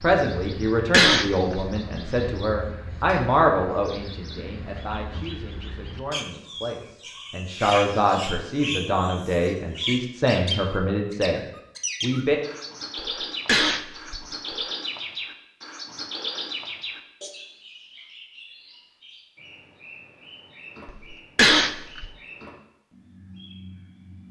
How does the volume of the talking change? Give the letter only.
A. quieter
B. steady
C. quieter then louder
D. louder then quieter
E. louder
C.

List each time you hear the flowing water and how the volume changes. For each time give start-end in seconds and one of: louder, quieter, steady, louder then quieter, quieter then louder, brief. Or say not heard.
not heard.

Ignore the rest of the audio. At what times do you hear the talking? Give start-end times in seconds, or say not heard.
0.0-12.4.